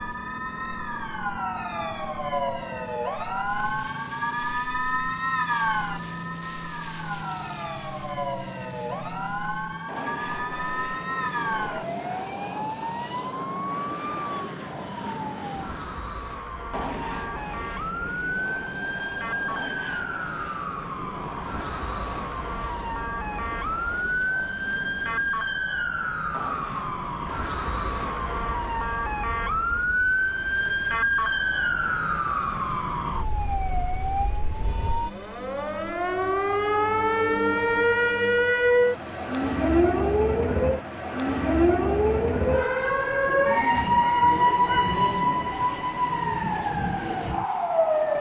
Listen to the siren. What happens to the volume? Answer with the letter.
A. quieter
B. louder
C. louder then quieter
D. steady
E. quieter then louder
B.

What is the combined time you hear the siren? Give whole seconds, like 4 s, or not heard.
48 s.